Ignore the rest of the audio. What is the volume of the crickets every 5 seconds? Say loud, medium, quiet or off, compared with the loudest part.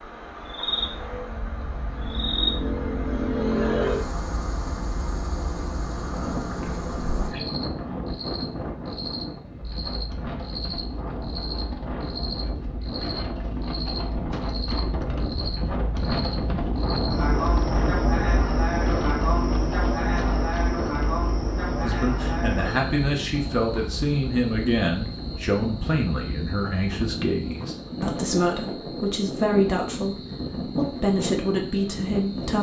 loud, medium, medium, loud, loud, quiet, quiet.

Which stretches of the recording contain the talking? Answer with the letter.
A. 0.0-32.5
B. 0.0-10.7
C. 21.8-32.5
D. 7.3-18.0
C.